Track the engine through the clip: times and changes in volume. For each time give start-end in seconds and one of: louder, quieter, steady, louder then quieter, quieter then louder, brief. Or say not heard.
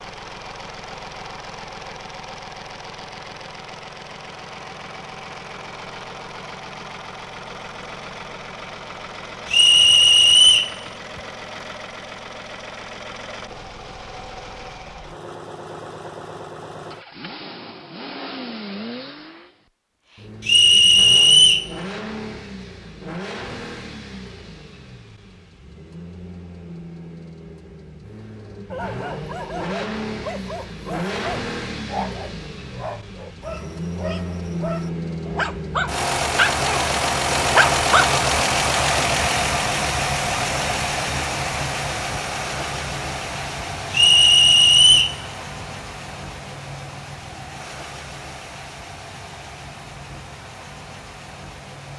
0.0-51.9 louder then quieter.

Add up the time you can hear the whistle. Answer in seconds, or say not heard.
4 s.